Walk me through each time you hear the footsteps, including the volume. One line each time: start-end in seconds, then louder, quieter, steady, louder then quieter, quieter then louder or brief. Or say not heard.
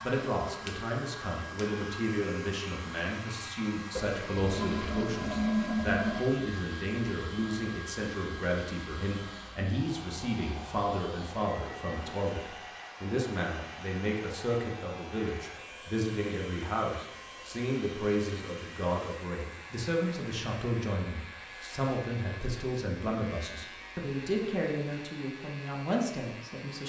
not heard.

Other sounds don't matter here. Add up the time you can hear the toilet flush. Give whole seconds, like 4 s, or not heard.
2 s.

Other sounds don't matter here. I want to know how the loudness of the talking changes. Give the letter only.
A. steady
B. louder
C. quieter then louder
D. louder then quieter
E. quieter
A.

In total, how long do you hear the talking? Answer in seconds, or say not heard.
27 s.